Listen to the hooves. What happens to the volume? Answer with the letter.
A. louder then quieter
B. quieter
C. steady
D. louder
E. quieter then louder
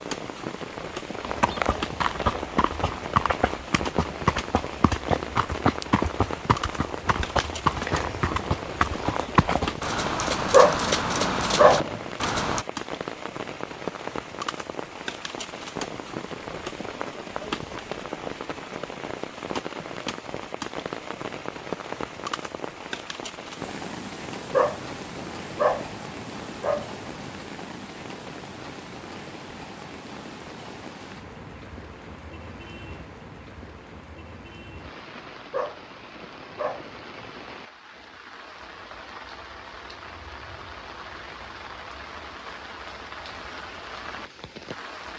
C.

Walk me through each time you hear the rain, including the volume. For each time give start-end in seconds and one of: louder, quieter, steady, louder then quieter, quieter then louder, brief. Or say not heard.
0.0-45.1 quieter.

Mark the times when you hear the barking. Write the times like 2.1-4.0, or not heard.
10.5-12.0, 24.5-27.3, 35.5-37.3.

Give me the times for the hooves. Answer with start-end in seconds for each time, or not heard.
1.2-12.7.